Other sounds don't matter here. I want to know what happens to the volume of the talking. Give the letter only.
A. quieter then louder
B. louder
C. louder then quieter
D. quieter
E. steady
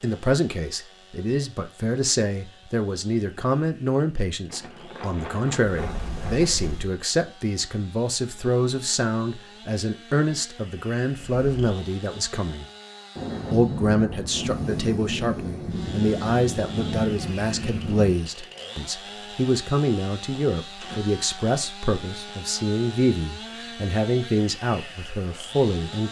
E.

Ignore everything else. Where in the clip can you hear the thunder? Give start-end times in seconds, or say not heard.
4.5-6.5, 13.2-18.1.